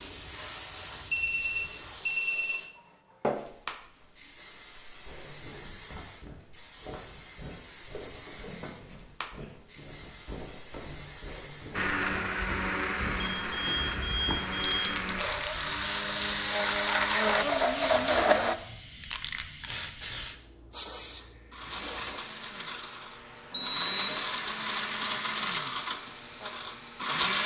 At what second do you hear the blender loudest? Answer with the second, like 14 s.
18 s.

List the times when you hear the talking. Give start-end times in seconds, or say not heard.
not heard.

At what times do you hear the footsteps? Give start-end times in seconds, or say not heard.
5.0-14.4.